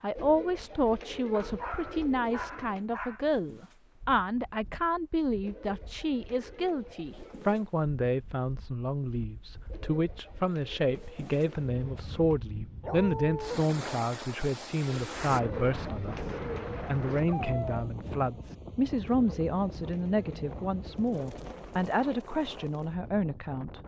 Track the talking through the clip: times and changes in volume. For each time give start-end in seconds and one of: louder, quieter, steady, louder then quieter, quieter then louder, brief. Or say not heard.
0.0-23.8 steady.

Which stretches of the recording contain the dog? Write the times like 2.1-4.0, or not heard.
1.3-3.2, 12.8-13.6, 17.2-18.4.